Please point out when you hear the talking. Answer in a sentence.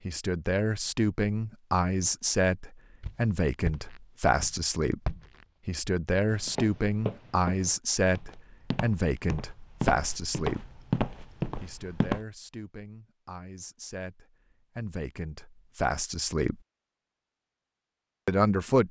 You can hear the talking from 0.1 to 5.0 s, from 5.7 to 10.7 s, from 11.6 to 16.6 s and from 18.2 to 18.8 s.